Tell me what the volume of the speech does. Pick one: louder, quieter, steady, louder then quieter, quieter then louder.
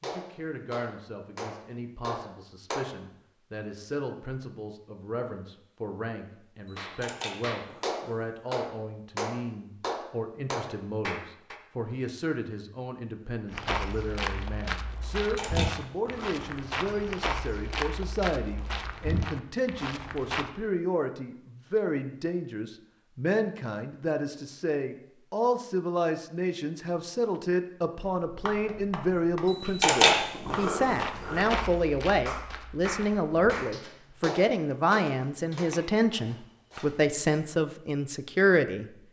louder.